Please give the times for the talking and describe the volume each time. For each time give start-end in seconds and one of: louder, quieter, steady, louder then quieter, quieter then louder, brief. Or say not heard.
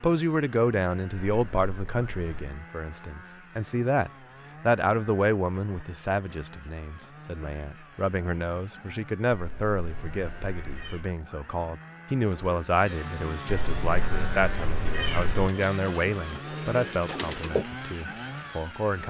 0.0-19.0 steady.